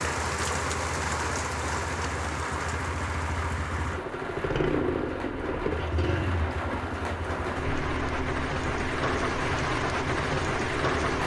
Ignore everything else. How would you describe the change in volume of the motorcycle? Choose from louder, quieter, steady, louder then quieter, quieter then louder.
louder then quieter.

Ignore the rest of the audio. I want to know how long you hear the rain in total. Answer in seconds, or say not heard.
11 s.